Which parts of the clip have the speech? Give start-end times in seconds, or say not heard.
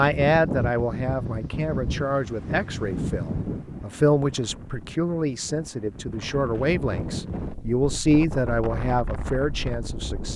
0.0-10.3.